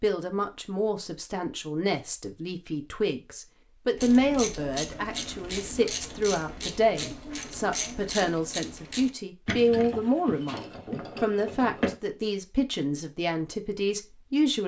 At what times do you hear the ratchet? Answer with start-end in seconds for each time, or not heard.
4.0-11.9.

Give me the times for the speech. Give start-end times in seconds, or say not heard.
0.0-14.6.